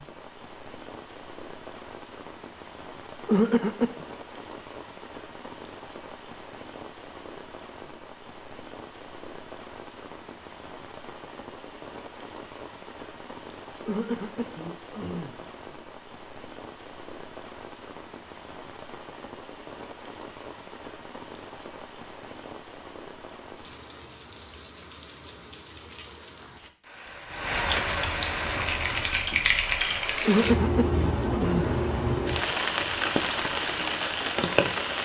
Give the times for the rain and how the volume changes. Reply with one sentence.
The rain can be heard from 0.0 to 35.0 s, getting louder.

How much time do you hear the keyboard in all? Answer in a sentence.
You can hear the keyboard for 2 seconds altogether.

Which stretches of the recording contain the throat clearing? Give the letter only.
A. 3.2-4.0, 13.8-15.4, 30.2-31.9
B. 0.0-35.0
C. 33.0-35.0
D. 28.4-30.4
A.